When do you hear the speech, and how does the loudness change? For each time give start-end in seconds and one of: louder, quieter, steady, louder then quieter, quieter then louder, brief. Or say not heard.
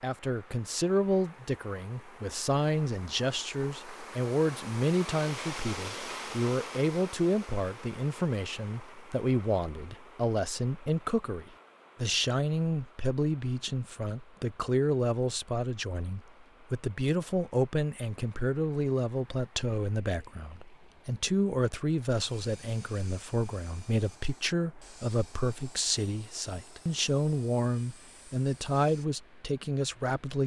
0.0-30.4 steady.